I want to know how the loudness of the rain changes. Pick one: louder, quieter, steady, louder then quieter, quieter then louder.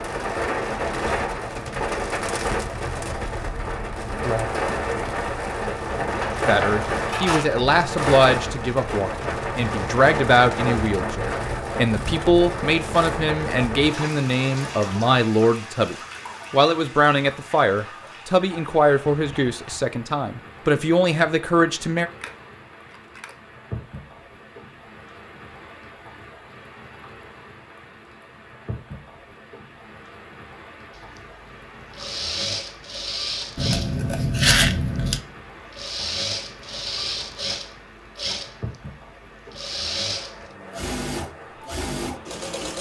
quieter.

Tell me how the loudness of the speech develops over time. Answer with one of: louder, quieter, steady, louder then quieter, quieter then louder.
steady.